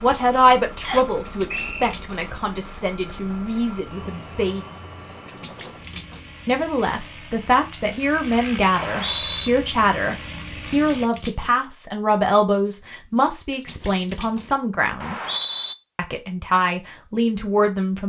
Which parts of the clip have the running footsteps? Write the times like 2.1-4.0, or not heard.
not heard.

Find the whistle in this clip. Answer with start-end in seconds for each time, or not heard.
0.8-1.9, 8.7-9.5, 15.0-15.8.